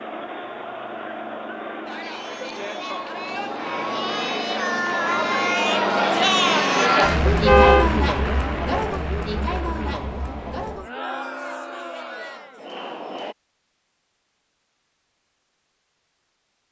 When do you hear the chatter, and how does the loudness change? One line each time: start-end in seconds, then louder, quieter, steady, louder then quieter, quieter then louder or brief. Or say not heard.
0.0-13.3 louder then quieter.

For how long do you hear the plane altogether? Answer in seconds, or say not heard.
11 s.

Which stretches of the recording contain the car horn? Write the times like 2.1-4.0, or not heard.
7.2-7.9.